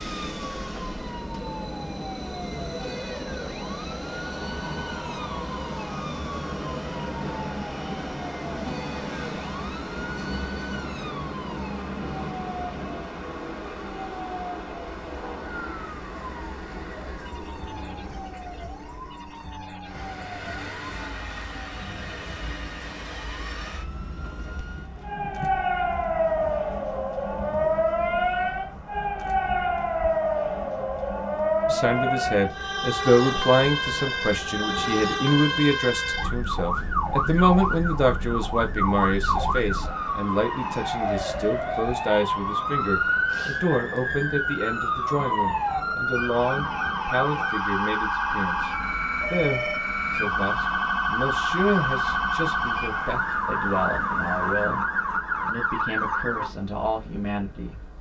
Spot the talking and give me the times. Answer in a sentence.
The talking can be heard from 31.6 to 54.9 s and from 55.5 to 57.8 s.